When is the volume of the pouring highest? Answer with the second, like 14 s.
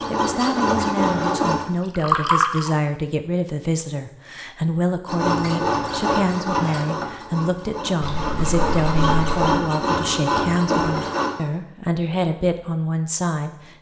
2 s.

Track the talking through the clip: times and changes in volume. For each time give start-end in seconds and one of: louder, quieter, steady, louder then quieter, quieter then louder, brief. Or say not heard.
0.1-13.7 steady.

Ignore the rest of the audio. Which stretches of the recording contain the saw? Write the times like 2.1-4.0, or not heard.
0.0-1.6, 5.0-11.3.